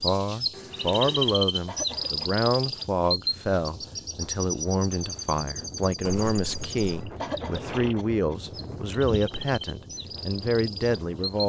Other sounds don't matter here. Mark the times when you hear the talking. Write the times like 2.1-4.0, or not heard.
0.0-11.4.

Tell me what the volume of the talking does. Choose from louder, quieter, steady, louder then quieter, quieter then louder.
steady.